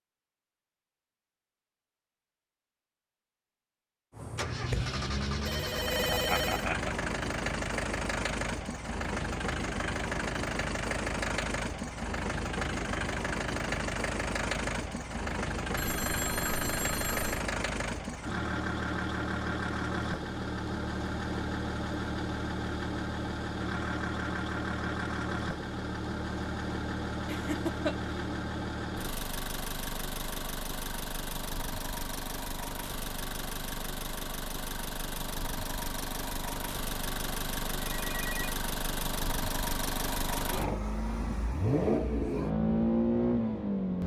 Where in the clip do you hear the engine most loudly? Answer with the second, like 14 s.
43 s.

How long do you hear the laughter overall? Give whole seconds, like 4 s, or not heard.
2 s.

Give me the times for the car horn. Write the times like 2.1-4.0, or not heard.
not heard.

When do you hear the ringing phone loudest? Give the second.
6 s.